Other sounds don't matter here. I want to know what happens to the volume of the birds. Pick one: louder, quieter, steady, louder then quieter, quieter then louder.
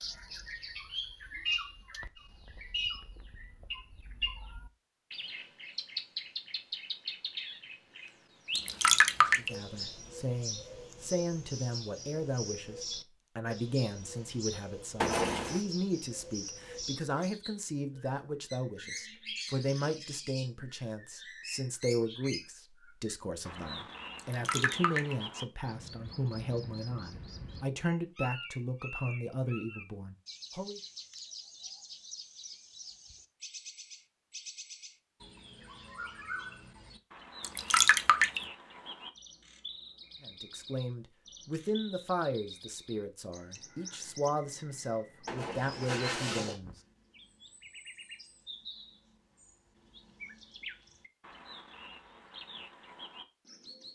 quieter.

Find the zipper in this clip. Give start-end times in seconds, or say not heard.
15.0-15.6, 45.2-46.6.